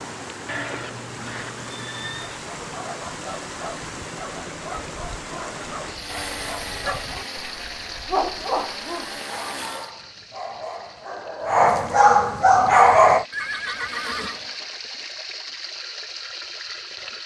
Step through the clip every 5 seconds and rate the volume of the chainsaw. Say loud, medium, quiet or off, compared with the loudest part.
off, loud, medium, off.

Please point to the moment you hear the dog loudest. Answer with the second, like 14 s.
13 s.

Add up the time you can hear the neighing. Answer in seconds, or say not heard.
3 s.